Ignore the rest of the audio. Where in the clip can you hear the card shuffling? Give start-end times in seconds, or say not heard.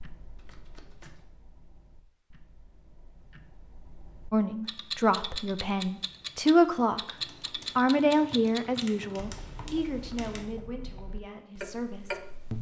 0.3-1.3.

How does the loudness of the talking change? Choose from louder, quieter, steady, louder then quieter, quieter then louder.
louder then quieter.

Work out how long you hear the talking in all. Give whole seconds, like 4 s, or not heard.
8 s.